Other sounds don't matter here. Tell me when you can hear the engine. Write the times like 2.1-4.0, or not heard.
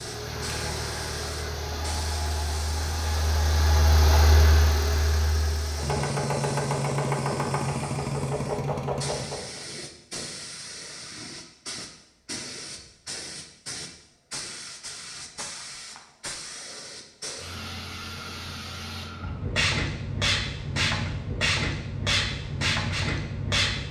0.0-9.6.